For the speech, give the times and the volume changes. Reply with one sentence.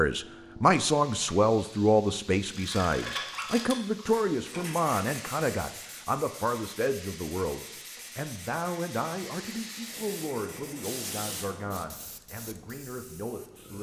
You can hear the speech from 0.0 to 13.7 s, getting quieter.